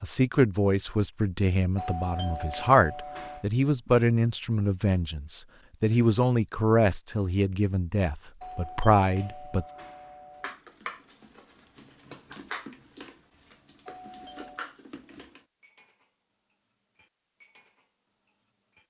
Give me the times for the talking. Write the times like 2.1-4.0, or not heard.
0.0-9.7.